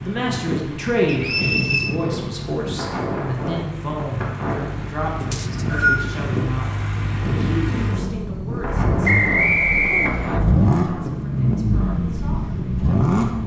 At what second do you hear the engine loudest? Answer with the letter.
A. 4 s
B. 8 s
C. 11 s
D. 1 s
C.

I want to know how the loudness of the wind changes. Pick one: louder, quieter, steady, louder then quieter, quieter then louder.
steady.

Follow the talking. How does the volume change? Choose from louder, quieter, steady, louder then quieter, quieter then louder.
quieter.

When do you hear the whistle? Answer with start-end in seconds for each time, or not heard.
1.1-1.9, 5.3-6.0, 9.1-10.4.